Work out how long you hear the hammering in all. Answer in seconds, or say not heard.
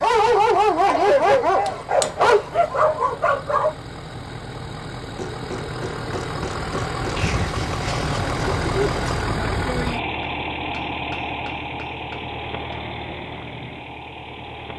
5 s.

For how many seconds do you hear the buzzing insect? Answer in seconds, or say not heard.
not heard.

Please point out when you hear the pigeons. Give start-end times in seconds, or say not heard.
7.2-9.2.